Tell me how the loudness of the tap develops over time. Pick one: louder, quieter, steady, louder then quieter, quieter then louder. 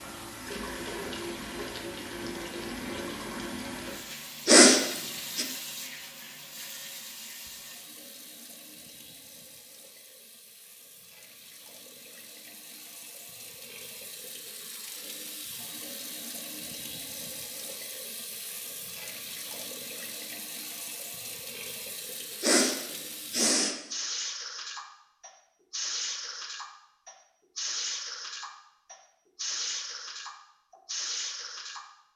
quieter then louder.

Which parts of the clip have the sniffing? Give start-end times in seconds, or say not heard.
4.5-5.5, 22.4-23.8.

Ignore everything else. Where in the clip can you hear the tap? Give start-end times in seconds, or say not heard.
0.0-31.9.